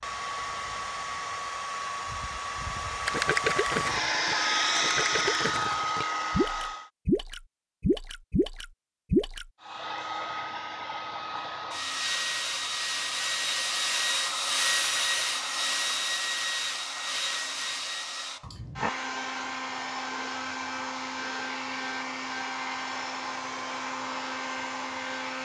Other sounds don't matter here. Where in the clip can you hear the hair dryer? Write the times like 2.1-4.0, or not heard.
0.0-6.9, 9.6-25.4.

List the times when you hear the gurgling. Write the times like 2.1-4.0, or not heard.
3.0-9.4.